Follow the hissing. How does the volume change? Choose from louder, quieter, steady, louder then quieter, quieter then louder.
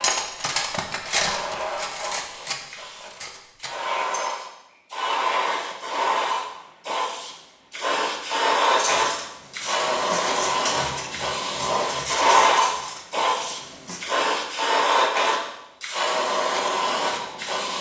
louder.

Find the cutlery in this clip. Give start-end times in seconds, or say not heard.
0.0-4.3, 8.8-14.1.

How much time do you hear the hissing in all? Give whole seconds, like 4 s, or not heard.
18 s.